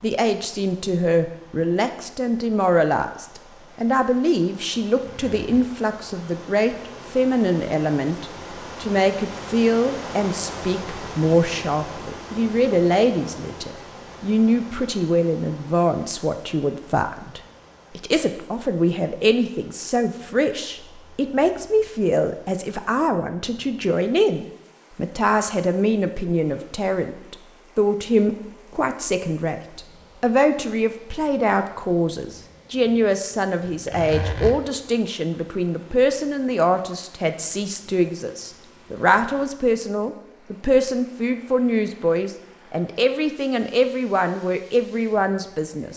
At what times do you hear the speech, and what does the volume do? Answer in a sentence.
You can hear the speech from 0.0 to 45.9 s, at a steady volume.